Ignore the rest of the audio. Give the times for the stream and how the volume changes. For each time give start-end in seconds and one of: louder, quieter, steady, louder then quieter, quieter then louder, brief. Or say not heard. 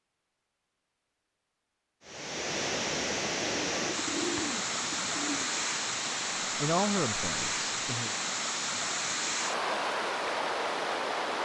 2.0-11.4 steady.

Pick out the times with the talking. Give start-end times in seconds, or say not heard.
6.5-8.2.